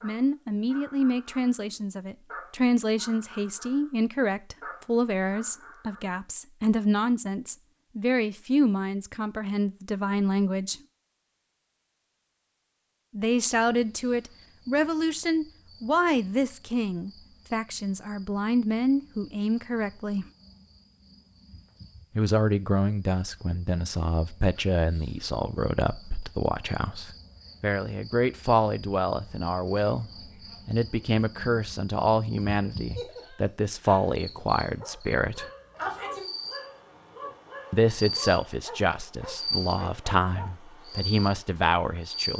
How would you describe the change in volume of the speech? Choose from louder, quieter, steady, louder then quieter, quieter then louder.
steady.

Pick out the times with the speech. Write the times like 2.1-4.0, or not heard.
0.0-10.8, 13.1-20.2, 22.1-35.5, 37.7-42.3.